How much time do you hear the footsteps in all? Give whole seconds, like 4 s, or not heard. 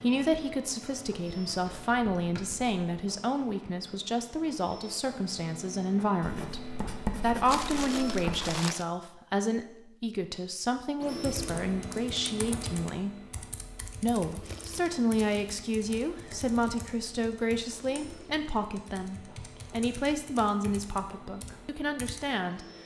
not heard.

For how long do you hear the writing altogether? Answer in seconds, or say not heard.
2 s.